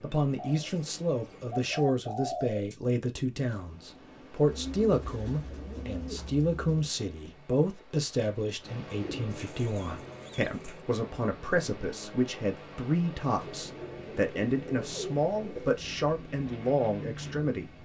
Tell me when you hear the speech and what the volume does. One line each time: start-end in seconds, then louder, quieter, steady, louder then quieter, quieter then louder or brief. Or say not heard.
0.0-17.8 steady.